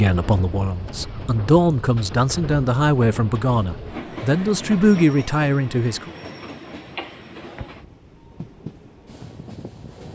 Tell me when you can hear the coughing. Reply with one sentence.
You can hear the coughing from 7.0 to 7.7 s.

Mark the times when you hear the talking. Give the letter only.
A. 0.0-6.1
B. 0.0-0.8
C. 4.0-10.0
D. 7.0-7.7
A.